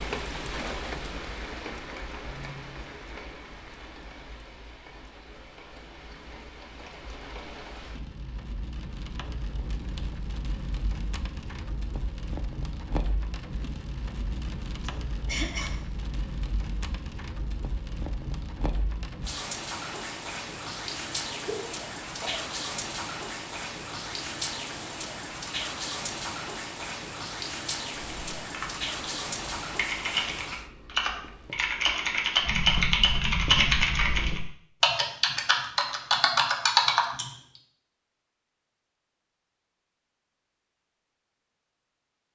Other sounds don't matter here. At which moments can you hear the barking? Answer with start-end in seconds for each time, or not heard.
not heard.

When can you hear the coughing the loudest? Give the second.
15 s.